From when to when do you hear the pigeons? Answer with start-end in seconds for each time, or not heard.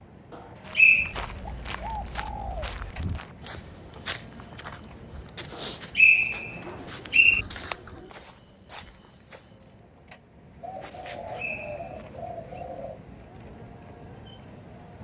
0.9-2.9, 6.6-8.2, 10.6-13.0.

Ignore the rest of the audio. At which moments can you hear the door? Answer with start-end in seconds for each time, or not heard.
not heard.